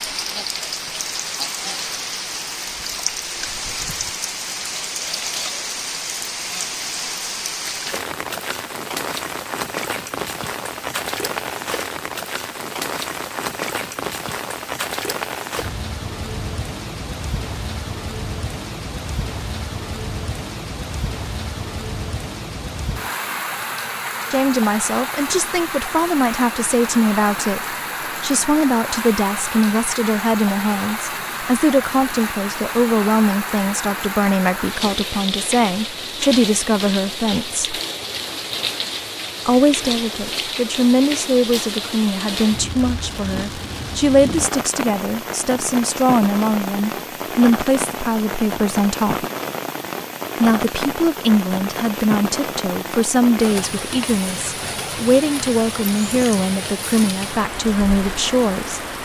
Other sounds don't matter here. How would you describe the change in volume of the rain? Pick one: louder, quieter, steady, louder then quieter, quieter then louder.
steady.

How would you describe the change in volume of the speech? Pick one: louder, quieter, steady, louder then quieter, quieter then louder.
steady.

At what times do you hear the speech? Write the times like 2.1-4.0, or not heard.
24.3-37.8, 39.5-49.2, 50.4-58.8.